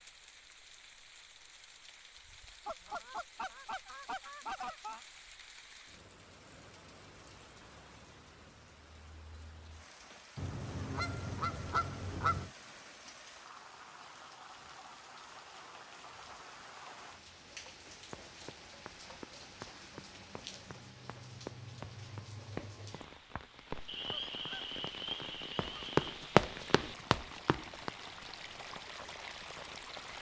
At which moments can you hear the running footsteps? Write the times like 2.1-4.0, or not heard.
18.1-27.9.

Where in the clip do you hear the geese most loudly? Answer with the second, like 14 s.
12 s.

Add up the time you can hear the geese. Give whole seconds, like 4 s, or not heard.
7 s.